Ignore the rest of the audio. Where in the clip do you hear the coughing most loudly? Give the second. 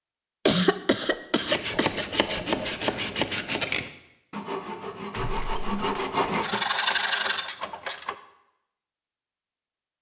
1 s.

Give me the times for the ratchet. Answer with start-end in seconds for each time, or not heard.
0.9-2.9, 6.2-8.2.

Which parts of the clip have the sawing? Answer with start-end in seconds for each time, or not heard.
1.4-7.5.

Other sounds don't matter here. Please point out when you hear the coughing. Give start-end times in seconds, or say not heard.
0.5-2.0, 5.1-6.6.